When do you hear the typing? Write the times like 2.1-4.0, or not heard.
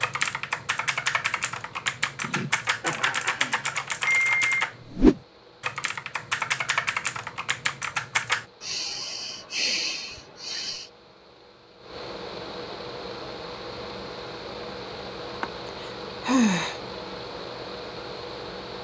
0.0-8.4.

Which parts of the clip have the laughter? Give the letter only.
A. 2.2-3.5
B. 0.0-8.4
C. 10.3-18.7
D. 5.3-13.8
A.